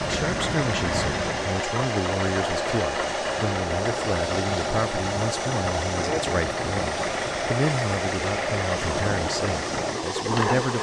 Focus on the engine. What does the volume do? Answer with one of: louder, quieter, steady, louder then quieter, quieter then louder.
steady.